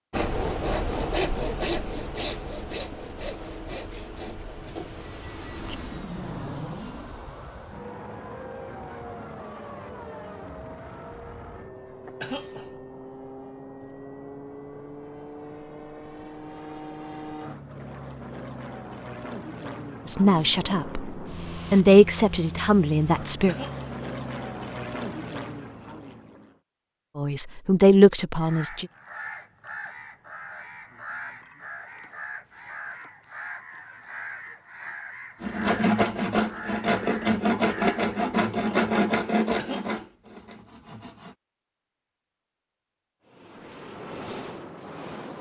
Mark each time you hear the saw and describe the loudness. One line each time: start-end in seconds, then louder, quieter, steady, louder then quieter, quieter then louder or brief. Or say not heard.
0.1-6.0 quieter
35.4-41.4 quieter.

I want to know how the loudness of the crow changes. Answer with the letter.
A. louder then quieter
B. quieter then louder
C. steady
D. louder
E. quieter
C.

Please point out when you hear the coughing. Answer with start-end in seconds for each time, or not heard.
12.2-12.7, 23.4-23.9, 39.5-40.0.